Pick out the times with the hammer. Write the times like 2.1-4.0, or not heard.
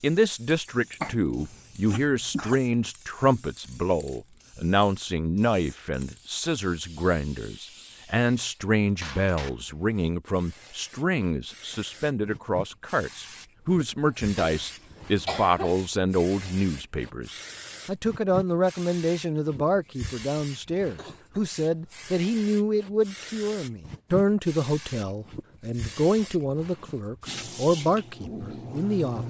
not heard.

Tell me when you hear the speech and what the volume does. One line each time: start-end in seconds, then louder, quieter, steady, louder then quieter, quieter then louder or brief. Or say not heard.
0.0-29.2 steady.